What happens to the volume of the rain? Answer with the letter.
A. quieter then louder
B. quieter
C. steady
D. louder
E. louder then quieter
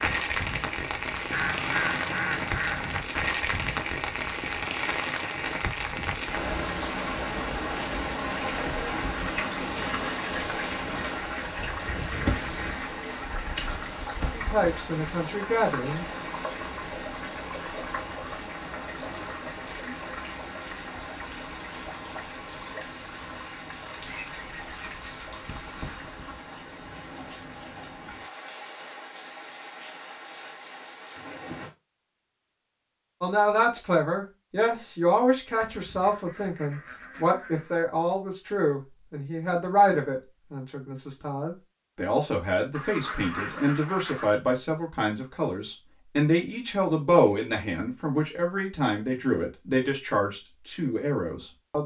B.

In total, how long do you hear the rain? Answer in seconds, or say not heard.
32 s.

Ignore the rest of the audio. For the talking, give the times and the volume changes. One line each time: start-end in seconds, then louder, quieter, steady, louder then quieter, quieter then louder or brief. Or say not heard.
14.3-16.1 brief
33.2-51.8 steady.